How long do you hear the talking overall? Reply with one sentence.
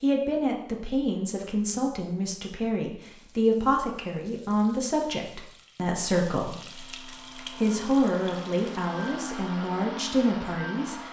The talking can be heard for 11 seconds in total.